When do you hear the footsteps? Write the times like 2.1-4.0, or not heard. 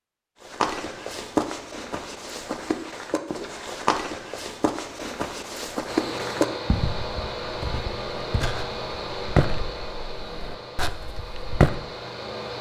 0.4-11.8.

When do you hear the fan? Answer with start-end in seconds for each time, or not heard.
5.8-12.5.